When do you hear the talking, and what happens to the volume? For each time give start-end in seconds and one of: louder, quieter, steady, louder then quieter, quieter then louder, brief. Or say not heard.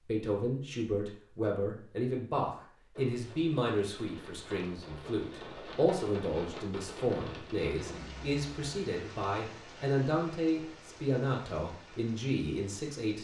0.0-13.2 steady.